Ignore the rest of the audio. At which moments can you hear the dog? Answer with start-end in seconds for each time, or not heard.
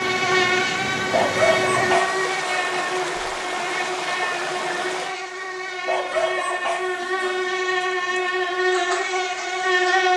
1.1-3.1, 5.8-8.2.